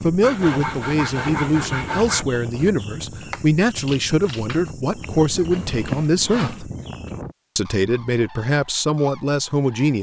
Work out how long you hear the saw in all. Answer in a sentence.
You can hear the saw for 3 seconds altogether.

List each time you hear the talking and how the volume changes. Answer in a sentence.
The talking can be heard from 0.0 to 6.7 s, at a steady volume; and briefly from 7.5 to 9.9 s.